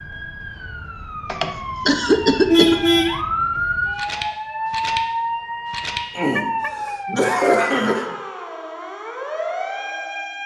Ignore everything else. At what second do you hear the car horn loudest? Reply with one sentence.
The loudest moment of the car horn is at 3 seconds.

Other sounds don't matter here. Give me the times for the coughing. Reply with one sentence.
You can hear the coughing from 1.2 to 2.8 s and from 6.2 to 8.2 s.